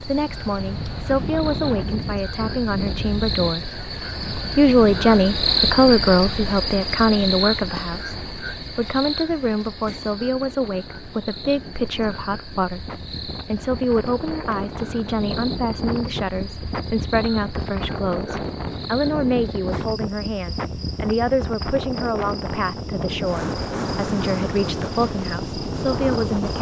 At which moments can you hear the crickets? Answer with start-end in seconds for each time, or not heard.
0.0-26.5.